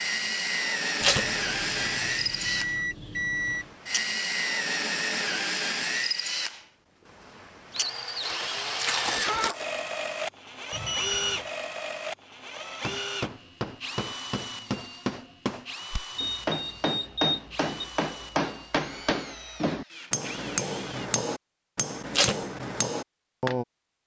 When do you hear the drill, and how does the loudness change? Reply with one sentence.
The drill can be heard from 0.0 to 21.1 s, getting quieter.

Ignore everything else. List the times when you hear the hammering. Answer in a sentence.
You can hear the hammering from 12.7 to 23.6 s.